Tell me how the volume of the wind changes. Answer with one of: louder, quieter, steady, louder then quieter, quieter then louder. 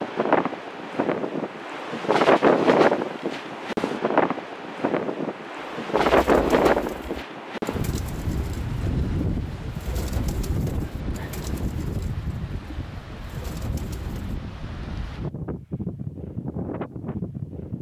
quieter.